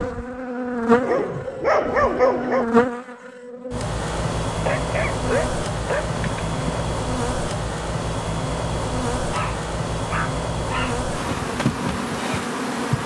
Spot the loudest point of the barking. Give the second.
2 s.